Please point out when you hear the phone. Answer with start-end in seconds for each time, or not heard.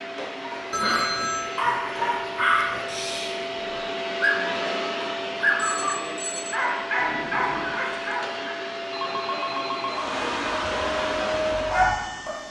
0.7-1.6, 5.5-6.6, 8.9-10.2.